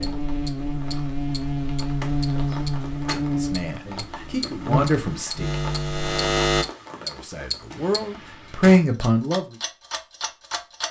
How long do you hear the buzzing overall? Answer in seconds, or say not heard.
7 s.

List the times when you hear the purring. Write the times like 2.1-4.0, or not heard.
not heard.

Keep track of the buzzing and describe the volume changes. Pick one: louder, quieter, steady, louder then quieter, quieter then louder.
steady.